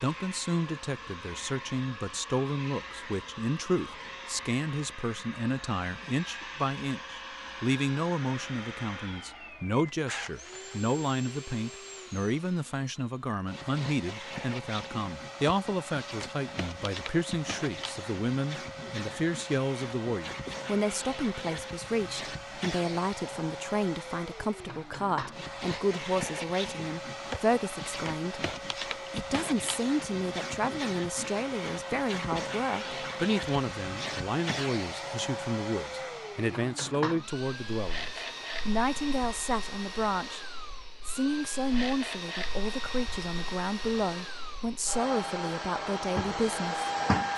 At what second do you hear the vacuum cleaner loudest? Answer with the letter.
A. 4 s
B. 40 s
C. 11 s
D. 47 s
D.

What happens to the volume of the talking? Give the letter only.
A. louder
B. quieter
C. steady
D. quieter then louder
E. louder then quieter
C.